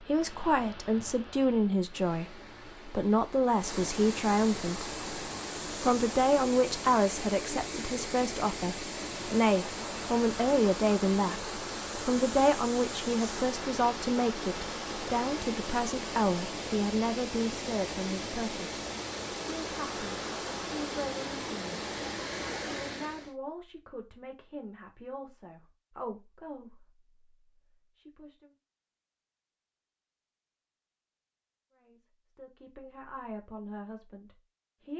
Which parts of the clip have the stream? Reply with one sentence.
You can hear the stream from 0.0 to 23.4 s.